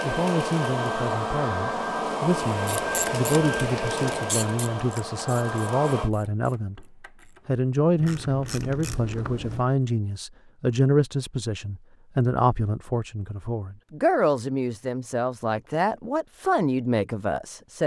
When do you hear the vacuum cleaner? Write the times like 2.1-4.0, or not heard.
0.0-6.1.